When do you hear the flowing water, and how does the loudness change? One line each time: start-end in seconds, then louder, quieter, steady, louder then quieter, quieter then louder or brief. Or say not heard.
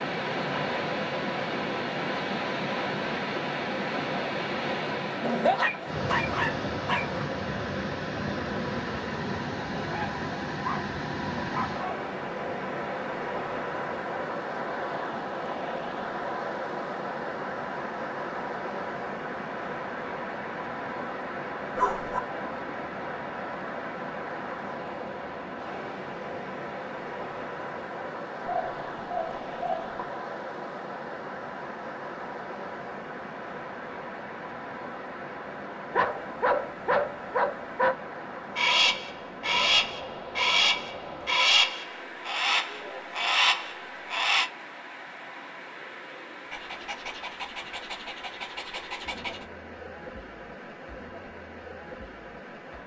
0.0-52.8 quieter.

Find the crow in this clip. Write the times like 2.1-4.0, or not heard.
38.5-44.5.